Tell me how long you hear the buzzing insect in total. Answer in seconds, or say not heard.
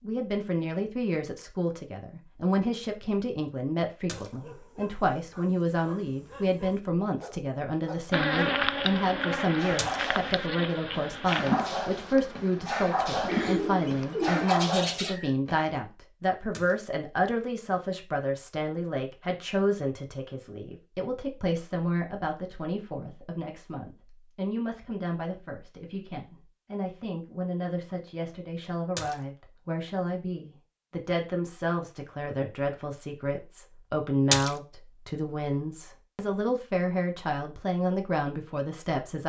6 s.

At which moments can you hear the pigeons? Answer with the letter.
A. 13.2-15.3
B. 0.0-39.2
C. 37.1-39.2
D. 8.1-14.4
A.